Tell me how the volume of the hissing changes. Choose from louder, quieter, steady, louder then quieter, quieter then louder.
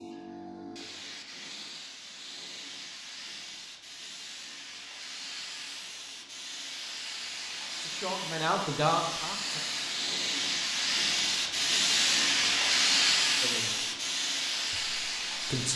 louder.